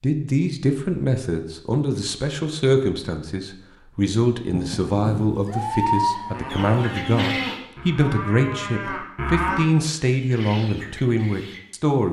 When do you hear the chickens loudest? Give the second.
6 s.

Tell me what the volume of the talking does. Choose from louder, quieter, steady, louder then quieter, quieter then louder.
steady.